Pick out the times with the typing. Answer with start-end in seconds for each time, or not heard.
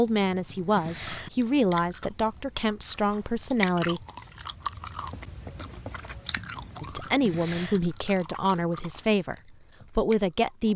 0.1-1.3, 6.5-7.8.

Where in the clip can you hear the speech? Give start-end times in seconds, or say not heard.
0.0-4.0, 6.8-10.7.